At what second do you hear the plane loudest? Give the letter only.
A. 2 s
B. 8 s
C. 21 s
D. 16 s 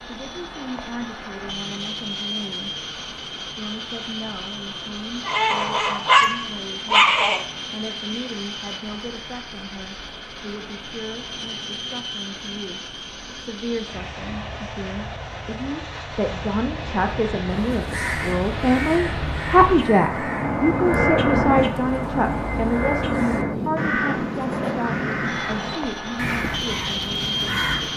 C.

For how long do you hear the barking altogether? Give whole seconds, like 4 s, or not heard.
2 s.